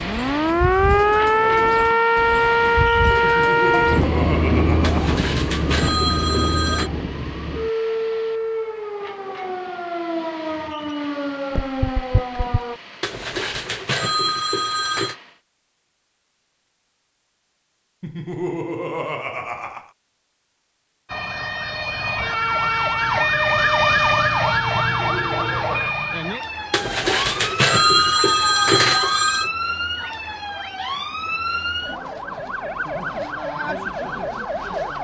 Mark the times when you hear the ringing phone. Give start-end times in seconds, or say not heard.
4.8-6.9, 13.0-15.2, 26.7-29.5.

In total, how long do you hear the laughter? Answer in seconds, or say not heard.
5 s.